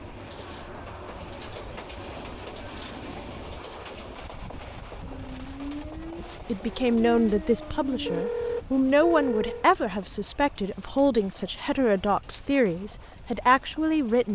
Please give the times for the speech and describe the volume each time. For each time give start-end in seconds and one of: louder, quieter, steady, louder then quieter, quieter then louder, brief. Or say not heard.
6.2-14.3 steady.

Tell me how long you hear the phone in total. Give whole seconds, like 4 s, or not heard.
2 s.